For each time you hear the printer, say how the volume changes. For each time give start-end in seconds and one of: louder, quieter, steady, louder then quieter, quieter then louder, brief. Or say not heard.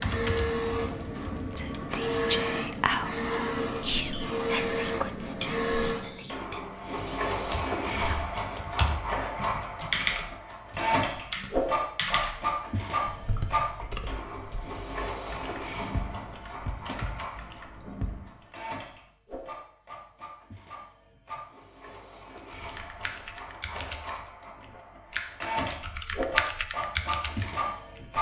0.0-28.1 quieter then louder.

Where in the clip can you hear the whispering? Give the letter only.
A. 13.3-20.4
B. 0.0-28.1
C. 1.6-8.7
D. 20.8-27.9
C.